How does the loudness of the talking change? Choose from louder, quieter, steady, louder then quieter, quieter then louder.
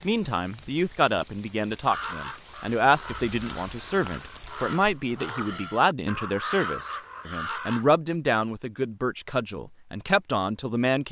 steady.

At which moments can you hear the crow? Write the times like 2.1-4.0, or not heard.
1.8-7.8.